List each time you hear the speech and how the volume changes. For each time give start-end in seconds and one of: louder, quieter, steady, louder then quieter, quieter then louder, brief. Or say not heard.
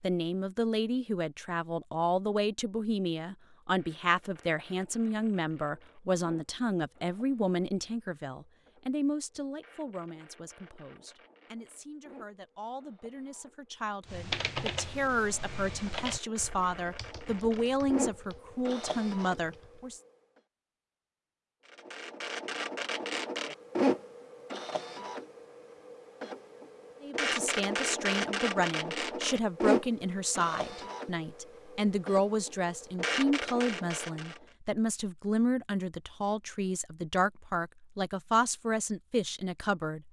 0.0-20.0 quieter then louder
27.0-40.0 steady.